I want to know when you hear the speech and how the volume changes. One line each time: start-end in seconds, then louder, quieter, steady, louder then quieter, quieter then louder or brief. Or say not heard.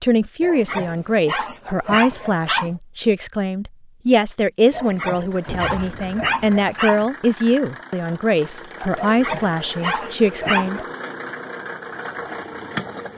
0.0-10.8 steady.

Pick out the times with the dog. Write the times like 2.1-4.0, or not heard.
0.4-2.8, 4.7-7.0, 8.9-10.8.